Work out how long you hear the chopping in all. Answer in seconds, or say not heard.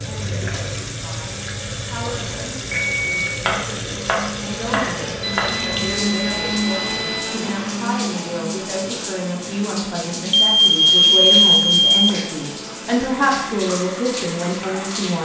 2 s.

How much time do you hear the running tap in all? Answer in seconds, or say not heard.
15 s.